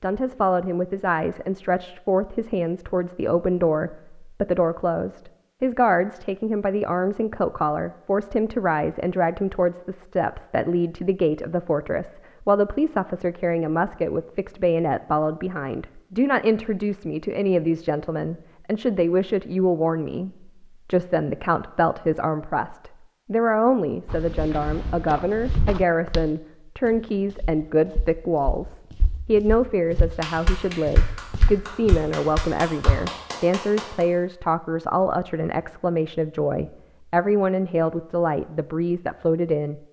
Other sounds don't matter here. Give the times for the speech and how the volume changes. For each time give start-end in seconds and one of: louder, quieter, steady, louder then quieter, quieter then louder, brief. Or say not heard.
0.0-39.8 steady.